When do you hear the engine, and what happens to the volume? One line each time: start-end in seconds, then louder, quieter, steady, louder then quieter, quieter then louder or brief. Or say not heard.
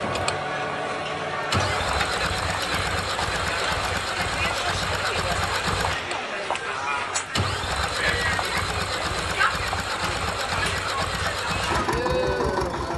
0.0-12.9 steady.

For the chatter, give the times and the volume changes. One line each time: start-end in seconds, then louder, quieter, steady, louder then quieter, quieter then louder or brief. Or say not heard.
0.0-12.9 steady.